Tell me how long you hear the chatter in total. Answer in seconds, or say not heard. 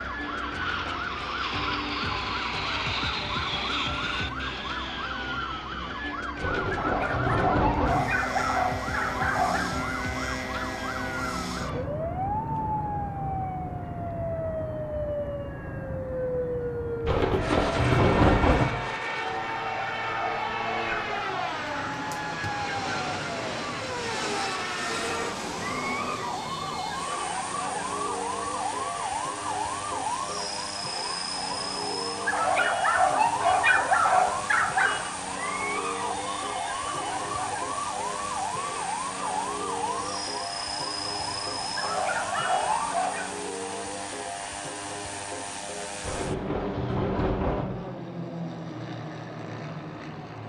not heard.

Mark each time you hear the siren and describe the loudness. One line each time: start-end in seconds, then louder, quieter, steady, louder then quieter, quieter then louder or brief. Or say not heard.
0.0-43.0 steady.